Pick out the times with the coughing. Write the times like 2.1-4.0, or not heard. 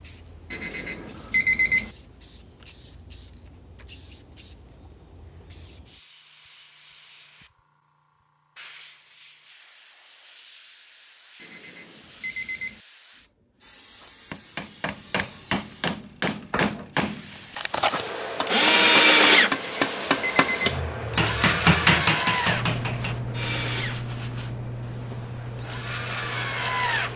not heard.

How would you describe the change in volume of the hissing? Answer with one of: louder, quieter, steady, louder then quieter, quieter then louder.
louder.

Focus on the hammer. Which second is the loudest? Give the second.
22 s.